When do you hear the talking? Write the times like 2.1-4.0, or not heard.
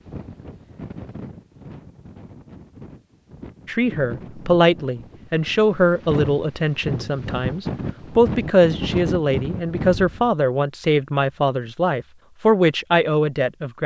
3.6-13.8.